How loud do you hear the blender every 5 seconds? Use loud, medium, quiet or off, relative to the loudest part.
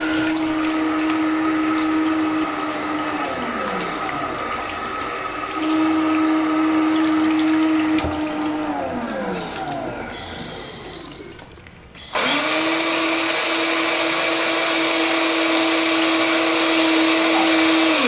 medium, loud, medium, loud.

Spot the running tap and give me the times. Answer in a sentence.
You can hear the running tap from 0.0 to 18.0 s.